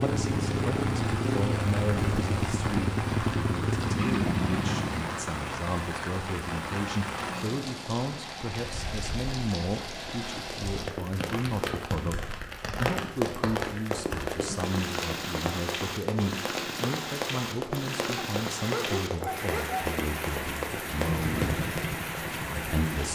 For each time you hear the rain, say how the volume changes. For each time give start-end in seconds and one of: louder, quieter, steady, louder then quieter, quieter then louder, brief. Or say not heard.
0.0-23.1 steady.